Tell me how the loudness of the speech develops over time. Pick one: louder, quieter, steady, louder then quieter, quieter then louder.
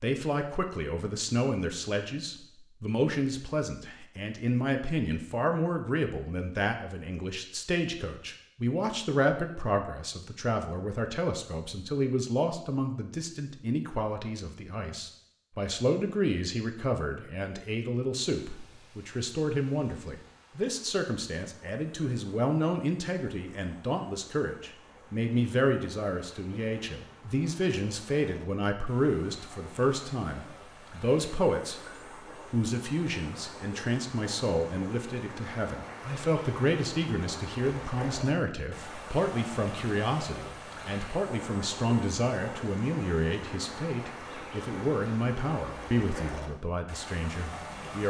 steady.